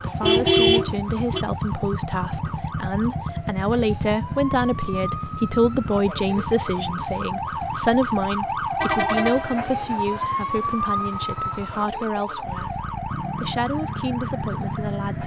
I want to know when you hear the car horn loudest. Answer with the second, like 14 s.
1 s.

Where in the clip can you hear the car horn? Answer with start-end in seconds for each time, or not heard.
0.2-1.4, 8.8-9.7.